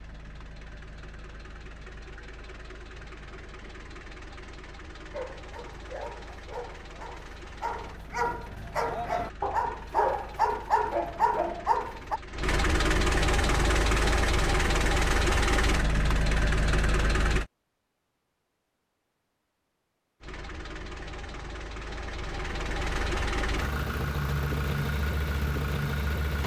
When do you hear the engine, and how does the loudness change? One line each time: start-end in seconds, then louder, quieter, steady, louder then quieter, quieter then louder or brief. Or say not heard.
0.0-17.4 louder
20.2-26.4 louder.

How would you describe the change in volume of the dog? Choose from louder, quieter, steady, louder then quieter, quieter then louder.
louder.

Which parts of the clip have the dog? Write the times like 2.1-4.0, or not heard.
5.1-12.2.